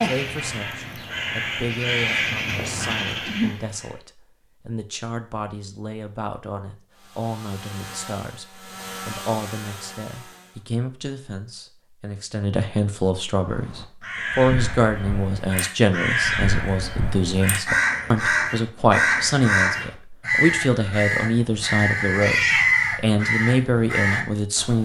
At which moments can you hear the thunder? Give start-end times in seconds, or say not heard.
not heard.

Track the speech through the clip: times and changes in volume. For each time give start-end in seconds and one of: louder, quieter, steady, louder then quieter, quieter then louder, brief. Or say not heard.
0.0-24.7 louder.